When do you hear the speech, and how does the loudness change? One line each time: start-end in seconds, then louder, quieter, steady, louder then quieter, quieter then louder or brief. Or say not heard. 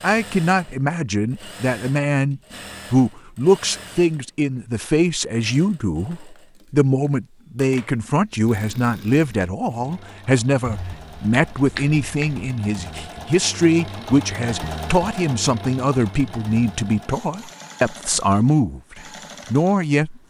0.0-20.2 steady.